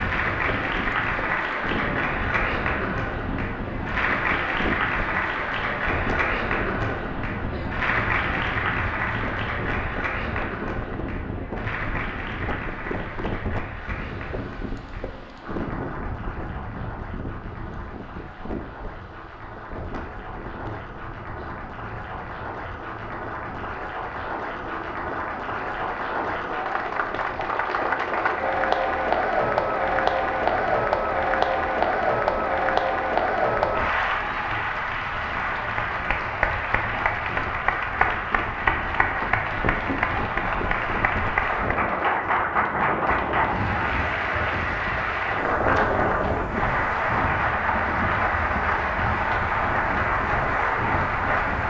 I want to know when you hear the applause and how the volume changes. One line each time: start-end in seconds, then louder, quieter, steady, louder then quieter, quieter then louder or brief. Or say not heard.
0.0-51.6 quieter then louder.